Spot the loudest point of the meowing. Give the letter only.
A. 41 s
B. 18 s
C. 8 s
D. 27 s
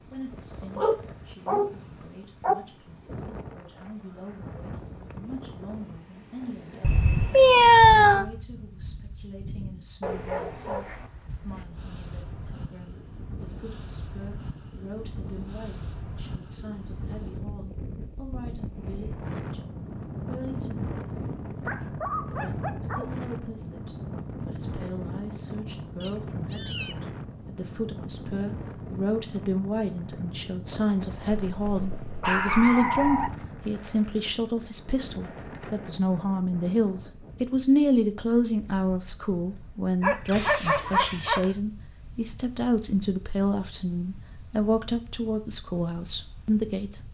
C.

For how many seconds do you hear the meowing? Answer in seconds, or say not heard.
3 s.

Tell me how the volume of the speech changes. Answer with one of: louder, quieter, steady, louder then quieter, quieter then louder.
louder.